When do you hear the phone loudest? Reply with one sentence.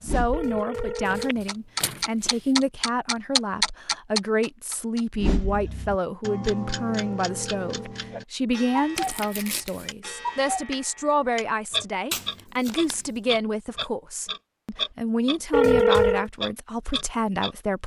The loudest moment of the phone is at 16 seconds.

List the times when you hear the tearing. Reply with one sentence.
You can hear the tearing from 1.0 to 2.4 s, from 8.9 to 9.9 s and from 12.1 to 13.2 s.